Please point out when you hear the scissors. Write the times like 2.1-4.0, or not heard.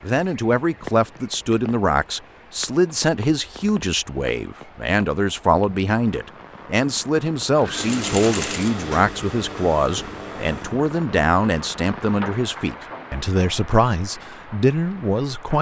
not heard.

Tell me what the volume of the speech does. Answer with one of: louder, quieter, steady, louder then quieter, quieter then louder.
steady.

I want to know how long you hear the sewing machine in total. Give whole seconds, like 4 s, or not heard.
3 s.